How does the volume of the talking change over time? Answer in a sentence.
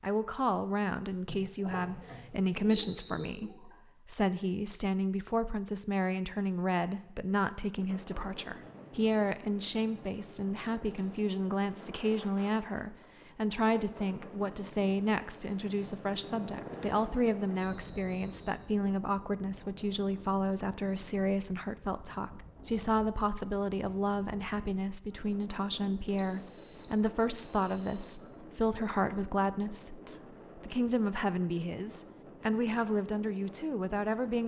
The volume of the talking stays about the same.